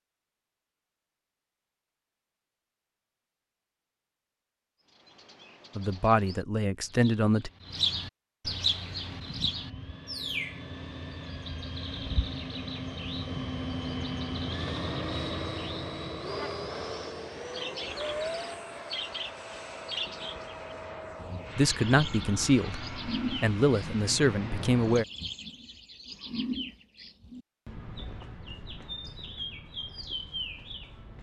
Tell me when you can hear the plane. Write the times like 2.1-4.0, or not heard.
8.8-25.1.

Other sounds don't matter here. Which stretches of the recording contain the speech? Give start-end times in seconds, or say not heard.
5.8-7.5, 21.6-25.1.